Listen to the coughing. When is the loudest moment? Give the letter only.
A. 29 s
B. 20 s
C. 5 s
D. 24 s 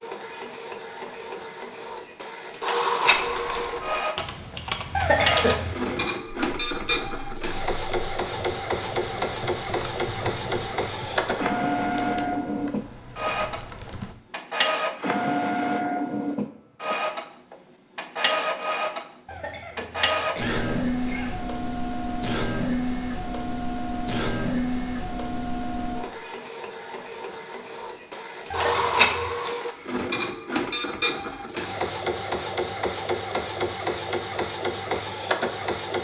C.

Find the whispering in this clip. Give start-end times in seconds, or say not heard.
not heard.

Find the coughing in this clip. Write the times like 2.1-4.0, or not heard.
5.0-5.8, 19.2-21.3, 28.5-29.4.